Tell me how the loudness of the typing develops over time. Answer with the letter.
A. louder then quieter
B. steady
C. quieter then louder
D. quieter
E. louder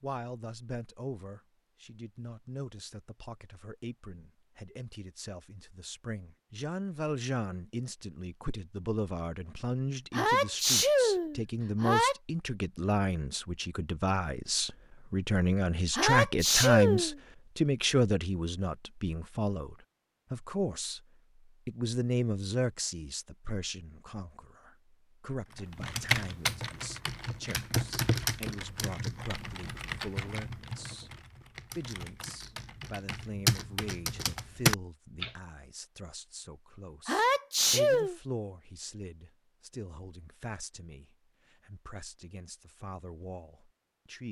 C.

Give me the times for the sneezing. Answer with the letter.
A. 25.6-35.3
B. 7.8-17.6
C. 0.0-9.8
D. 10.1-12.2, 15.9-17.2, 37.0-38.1
D.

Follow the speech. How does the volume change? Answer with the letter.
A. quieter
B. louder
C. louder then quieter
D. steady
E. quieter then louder
C.